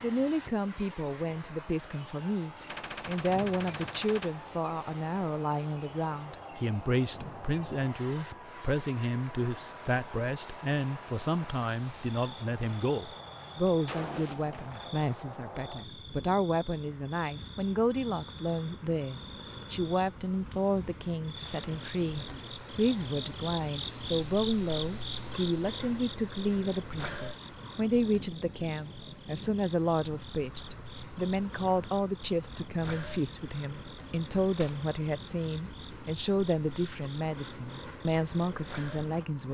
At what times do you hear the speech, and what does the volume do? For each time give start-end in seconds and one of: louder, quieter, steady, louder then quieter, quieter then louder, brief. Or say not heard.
0.0-39.4 steady.